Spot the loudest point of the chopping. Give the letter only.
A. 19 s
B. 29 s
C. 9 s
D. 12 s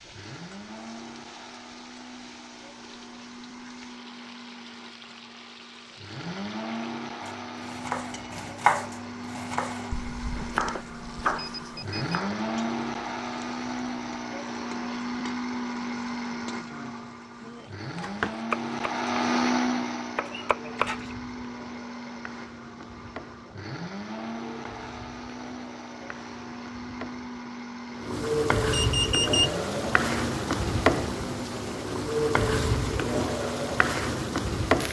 C.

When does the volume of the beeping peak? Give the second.
29 s.